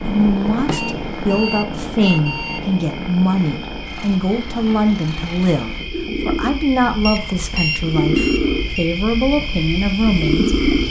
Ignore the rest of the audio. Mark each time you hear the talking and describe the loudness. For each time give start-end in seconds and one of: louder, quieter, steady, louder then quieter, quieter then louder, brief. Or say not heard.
0.1-10.6 steady.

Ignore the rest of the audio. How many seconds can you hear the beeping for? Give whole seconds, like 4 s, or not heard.
4 s.